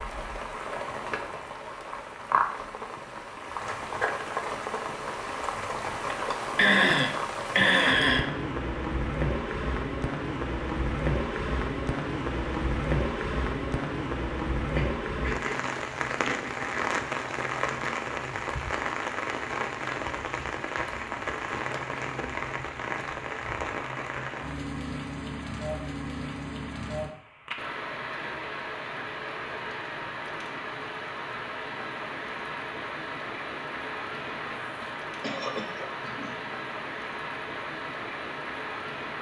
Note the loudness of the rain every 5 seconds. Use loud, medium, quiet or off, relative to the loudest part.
loud, loud, loud, loud, loud, medium, medium, medium.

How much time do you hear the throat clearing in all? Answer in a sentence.
The throat clearing can be heard for 5 seconds in total.